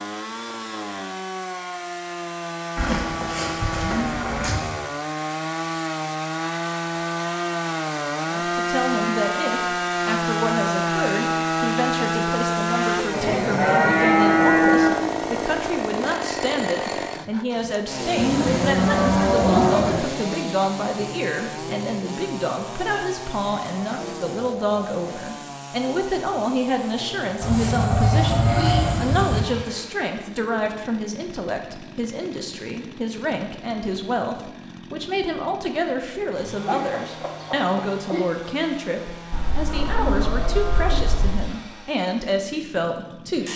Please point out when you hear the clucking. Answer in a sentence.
You can hear the clucking from 36.6 to 38.2 s.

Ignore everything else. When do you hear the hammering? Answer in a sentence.
You can't hear the hammering here.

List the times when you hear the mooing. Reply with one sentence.
You can hear the mooing from 2.8 to 4.6 s, from 13.1 to 15.1 s, from 18.1 to 20.1 s, from 27.4 to 29.4 s and from 39.3 to 41.4 s.